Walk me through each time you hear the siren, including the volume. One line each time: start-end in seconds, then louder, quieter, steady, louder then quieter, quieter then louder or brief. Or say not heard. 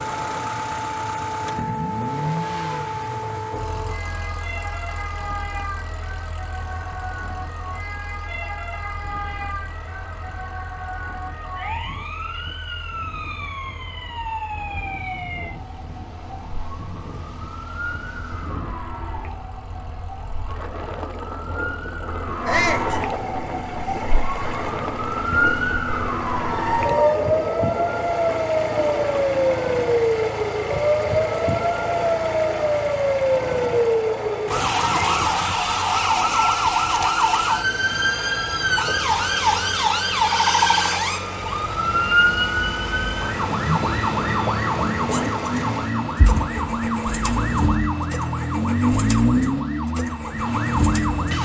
0.0-51.4 louder.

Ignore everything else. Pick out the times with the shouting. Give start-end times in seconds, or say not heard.
22.4-22.9.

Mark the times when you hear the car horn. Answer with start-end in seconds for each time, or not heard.
not heard.